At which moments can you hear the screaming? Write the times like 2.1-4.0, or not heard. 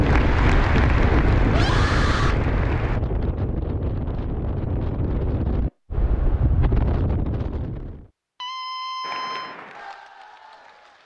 1.4-2.4, 8.4-9.6.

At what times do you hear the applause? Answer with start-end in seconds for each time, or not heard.
0.0-3.0, 9.0-11.0.